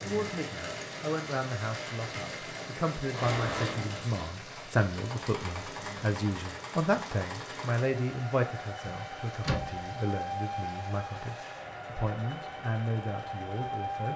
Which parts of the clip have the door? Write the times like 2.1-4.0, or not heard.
3.1-4.2, 8.8-9.8.